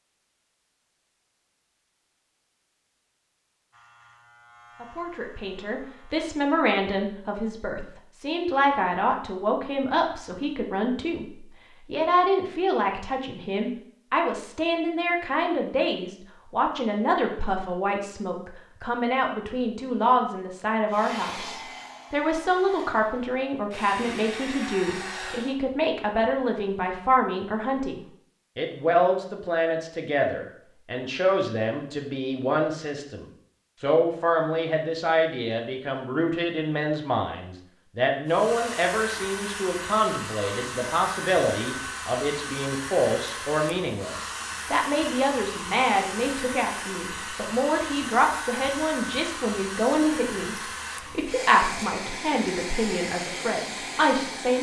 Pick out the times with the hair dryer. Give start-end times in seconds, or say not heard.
20.9-25.6, 38.2-54.5.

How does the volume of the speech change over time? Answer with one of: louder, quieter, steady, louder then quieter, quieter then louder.
steady.